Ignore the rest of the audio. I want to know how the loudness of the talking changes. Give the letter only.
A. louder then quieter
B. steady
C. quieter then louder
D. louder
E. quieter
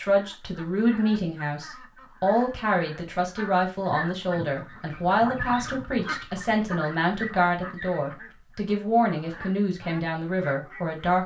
B.